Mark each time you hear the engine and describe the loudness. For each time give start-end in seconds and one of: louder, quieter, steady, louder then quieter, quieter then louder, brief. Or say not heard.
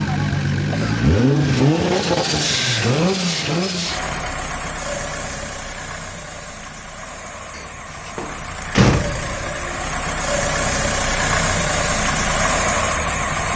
0.0-13.5 quieter then louder.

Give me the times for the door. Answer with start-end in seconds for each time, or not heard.
7.5-9.4.